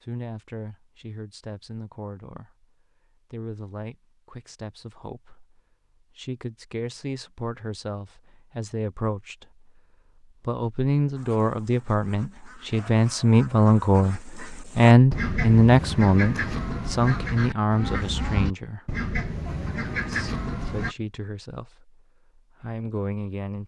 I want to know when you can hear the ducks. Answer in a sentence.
The ducks can be heard from 11.2 to 20.9 s.